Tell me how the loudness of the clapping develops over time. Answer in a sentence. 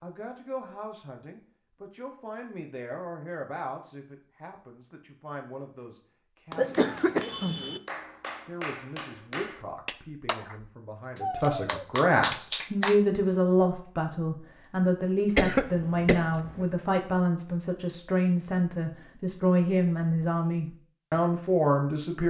The loudness of the clapping goes up.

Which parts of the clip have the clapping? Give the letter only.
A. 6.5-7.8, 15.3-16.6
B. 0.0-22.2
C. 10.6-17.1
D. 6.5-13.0
D.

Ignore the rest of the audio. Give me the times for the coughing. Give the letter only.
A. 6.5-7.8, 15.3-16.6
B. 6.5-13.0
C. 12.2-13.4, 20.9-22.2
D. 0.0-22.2
A.